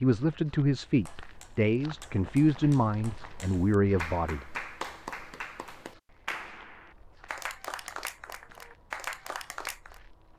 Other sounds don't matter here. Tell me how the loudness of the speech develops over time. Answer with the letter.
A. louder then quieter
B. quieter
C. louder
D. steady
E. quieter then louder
D.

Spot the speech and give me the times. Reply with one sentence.
The speech can be heard from 0.0 to 4.5 s.